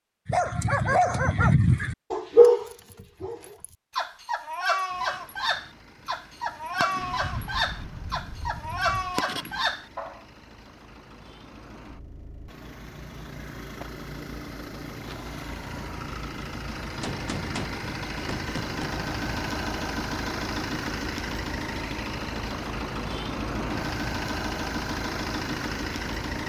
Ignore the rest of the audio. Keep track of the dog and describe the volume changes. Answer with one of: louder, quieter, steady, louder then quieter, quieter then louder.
quieter.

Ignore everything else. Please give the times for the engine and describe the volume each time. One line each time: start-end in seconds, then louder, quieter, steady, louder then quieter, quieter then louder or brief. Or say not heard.
4.8-26.4 louder.